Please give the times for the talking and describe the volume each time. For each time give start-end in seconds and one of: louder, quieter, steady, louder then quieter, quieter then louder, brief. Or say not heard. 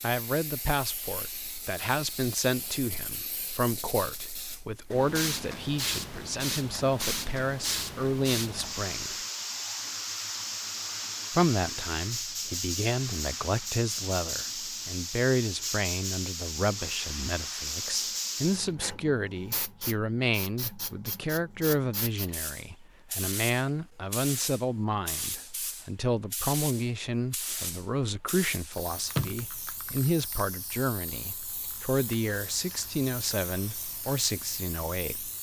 0.0-9.2 steady
11.3-35.3 steady.